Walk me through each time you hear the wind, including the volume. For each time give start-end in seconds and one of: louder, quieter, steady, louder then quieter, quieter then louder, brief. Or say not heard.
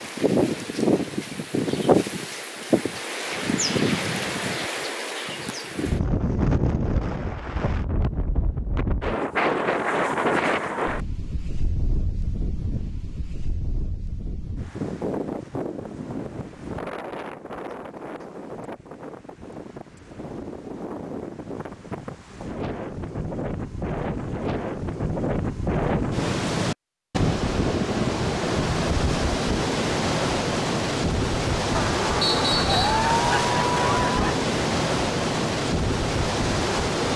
0.0-37.1 quieter then louder.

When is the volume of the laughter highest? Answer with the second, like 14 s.
33 s.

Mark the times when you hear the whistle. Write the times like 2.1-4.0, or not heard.
32.2-33.0.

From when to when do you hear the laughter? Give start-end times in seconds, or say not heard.
31.7-34.5.